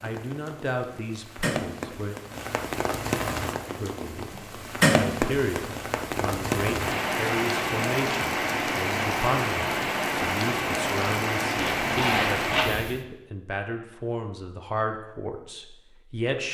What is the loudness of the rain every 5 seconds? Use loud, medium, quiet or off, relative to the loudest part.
loud, loud, loud, off.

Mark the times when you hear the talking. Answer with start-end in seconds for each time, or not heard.
0.0-2.1, 3.6-4.3, 5.0-16.4.